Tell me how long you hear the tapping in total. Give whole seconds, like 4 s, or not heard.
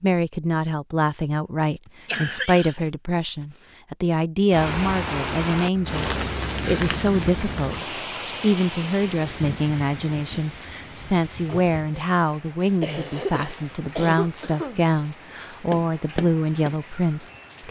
2 s.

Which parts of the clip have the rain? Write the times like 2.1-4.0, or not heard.
4.5-17.6.